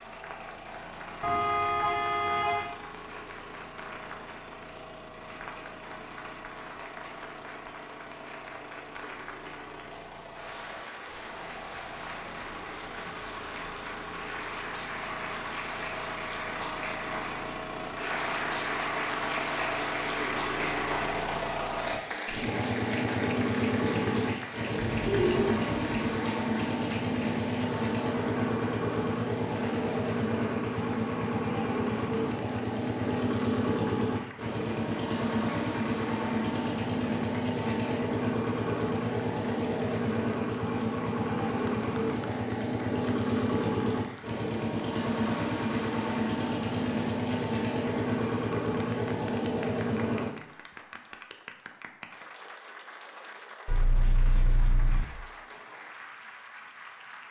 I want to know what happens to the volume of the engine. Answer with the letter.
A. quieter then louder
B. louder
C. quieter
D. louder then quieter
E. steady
B.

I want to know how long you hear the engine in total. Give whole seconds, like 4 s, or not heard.
50 s.